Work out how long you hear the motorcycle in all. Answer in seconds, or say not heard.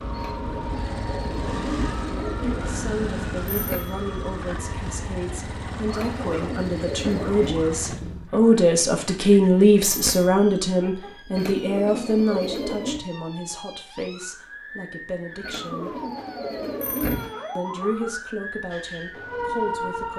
8 s.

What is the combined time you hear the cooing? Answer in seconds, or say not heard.
8 s.